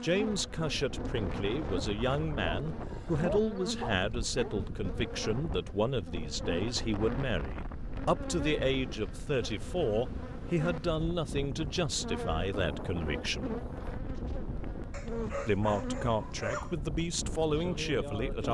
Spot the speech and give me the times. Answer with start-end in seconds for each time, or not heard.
0.0-13.6, 15.4-18.4.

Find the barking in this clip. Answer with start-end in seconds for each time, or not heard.
2.5-4.5, 14.9-16.8.